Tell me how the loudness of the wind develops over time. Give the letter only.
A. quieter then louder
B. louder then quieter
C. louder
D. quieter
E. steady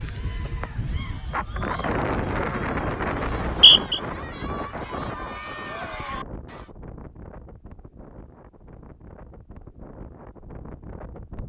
D.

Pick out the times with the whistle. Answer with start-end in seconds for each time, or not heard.
3.2-4.0.